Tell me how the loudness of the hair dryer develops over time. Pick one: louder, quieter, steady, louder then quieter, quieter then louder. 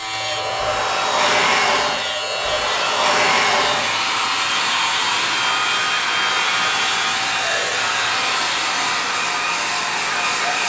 steady.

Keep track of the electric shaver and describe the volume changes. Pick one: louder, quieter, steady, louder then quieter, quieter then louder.
steady.